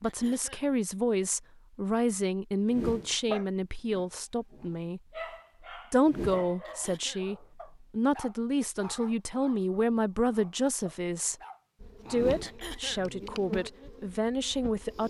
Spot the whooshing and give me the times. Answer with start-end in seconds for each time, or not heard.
2.7-3.1, 6.0-6.5, 12.1-12.6.